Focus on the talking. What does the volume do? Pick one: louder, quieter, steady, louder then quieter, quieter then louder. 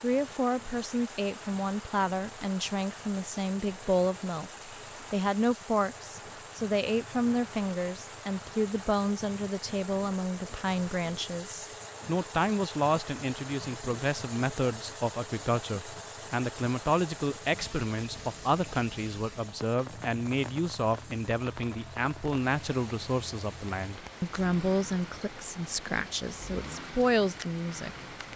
steady.